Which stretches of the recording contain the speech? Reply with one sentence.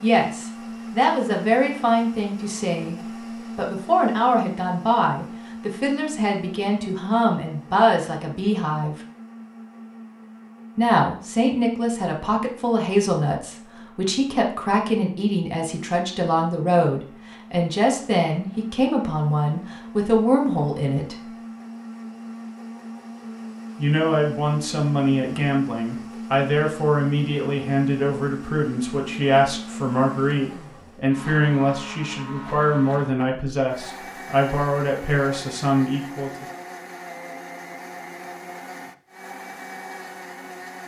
You can hear the speech from 0.0 to 8.9 s, from 10.8 to 21.3 s and from 23.8 to 36.5 s.